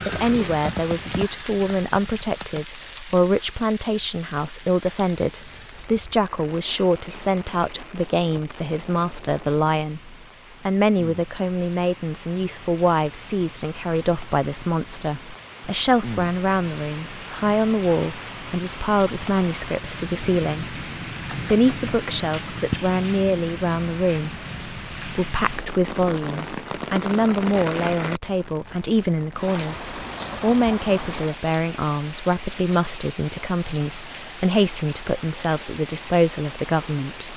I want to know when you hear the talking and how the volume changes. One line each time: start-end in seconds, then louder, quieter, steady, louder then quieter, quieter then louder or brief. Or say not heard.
0.1-37.3 steady.